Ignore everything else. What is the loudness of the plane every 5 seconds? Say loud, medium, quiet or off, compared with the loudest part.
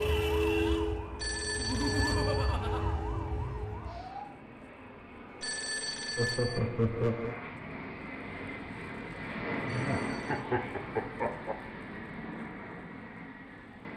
medium, loud, loud.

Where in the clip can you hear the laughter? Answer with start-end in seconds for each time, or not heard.
1.6-2.8, 6.2-7.3, 9.7-11.6.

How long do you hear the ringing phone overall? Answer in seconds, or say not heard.
4 s.